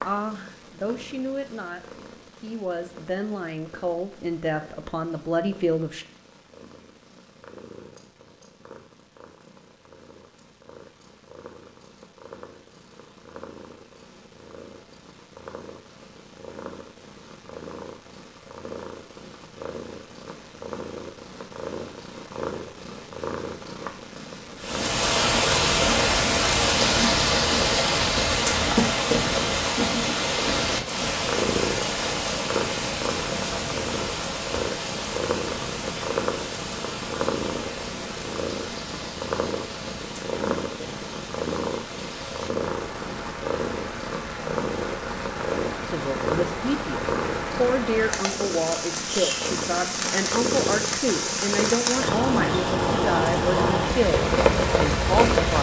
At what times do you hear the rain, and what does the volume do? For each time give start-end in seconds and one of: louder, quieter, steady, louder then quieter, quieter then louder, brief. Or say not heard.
24.6-55.5 quieter then louder.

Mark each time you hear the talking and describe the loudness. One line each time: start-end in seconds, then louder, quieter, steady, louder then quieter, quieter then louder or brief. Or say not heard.
0.0-6.0 quieter then louder
45.9-55.5 steady.